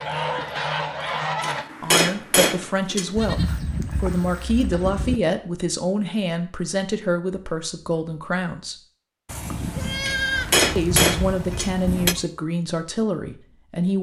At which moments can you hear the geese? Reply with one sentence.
The geese can be heard from 0.0 to 1.6 s.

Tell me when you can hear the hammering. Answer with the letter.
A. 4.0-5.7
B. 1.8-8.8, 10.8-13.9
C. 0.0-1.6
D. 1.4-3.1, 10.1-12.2
D.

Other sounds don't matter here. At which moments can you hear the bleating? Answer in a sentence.
You can hear the bleating from 3.1 to 5.2 s and from 9.2 to 12.2 s.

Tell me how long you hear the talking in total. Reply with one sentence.
The talking can be heard for 10 seconds in total.